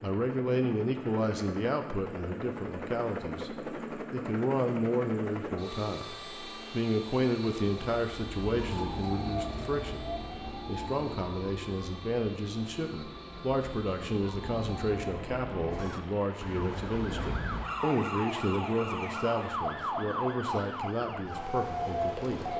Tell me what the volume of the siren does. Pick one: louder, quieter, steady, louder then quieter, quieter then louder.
quieter then louder.